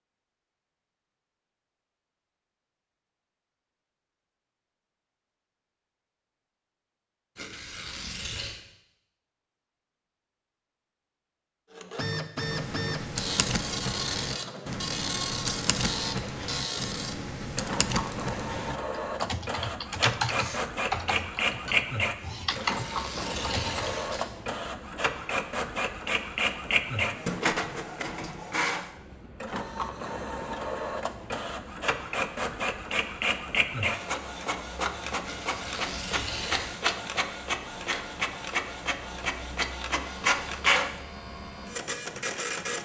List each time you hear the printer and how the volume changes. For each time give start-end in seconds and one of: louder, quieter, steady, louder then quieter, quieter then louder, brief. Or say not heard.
11.8-42.8 steady.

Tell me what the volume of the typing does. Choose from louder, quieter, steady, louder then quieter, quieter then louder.
steady.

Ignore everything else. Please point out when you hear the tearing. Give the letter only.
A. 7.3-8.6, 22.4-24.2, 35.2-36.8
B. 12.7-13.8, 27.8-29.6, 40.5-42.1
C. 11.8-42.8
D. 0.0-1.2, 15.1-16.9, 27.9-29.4
A.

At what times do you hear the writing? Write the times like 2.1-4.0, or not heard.
not heard.